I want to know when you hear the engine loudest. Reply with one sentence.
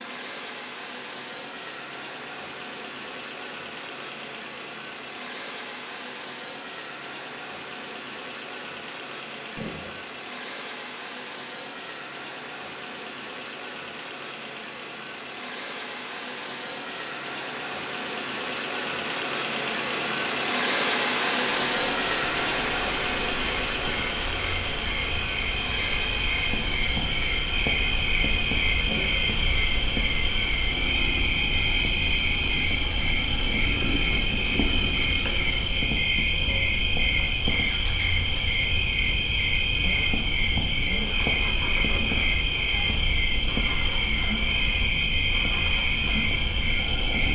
The volume of the engine peaks at 21 seconds.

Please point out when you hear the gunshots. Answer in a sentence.
You can hear the gunshots from 9.6 to 10.0 s and from 28.9 to 29.3 s.